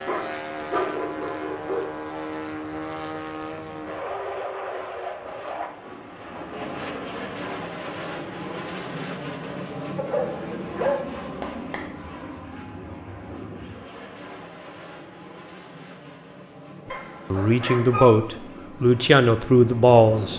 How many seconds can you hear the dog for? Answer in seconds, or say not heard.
5 s.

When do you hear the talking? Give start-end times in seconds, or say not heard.
17.3-20.3.